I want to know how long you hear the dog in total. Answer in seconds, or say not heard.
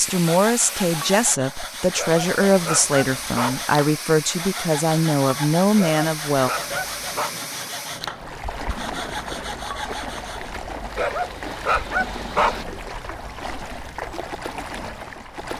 5 s.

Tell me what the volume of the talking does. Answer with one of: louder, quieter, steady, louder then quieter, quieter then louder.
steady.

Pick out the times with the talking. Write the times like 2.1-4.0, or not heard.
0.0-6.5.